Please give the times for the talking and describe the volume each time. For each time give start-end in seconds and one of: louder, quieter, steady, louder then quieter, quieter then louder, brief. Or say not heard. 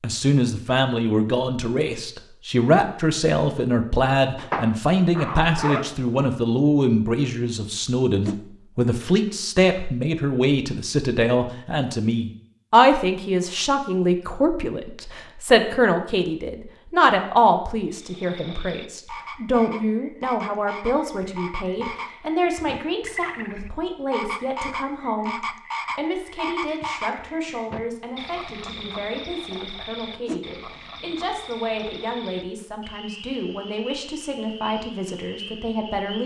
0.0-36.2 quieter.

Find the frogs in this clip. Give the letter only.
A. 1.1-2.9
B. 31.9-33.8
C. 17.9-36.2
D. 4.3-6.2
C.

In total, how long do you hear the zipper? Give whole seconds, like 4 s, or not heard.
2 s.